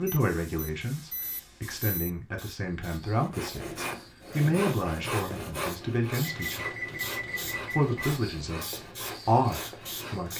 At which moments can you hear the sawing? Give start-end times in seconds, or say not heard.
3.1-10.3.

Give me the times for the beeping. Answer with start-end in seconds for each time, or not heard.
0.1-2.1, 6.2-8.1.